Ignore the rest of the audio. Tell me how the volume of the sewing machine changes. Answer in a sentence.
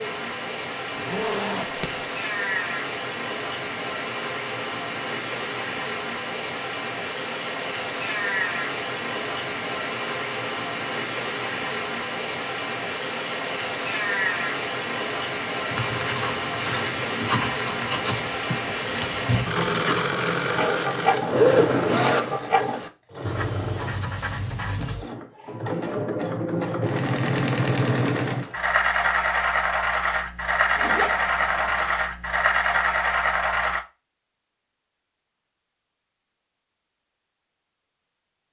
The volume of the sewing machine goes down, then up.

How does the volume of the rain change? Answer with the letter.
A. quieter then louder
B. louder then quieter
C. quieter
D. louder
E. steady
E.